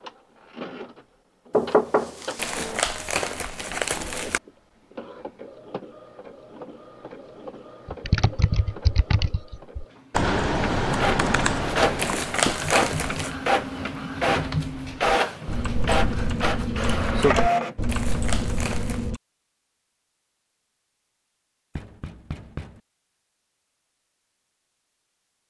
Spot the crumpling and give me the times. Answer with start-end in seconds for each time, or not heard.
2.4-4.4, 11.9-13.3, 17.9-19.1.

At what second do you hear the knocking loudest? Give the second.
2 s.